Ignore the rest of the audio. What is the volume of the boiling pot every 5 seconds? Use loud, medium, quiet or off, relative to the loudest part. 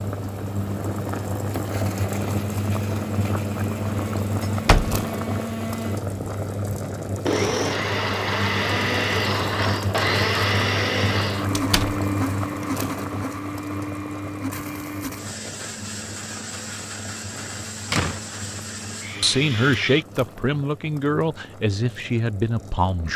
loud, loud, loud, quiet, quiet.